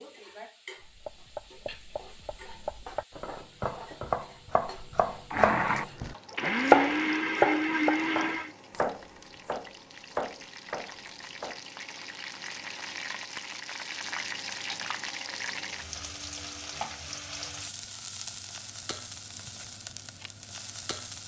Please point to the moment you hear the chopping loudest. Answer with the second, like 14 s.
7 s.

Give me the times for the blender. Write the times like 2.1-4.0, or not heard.
5.3-8.6.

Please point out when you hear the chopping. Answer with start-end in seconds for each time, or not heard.
0.8-11.6.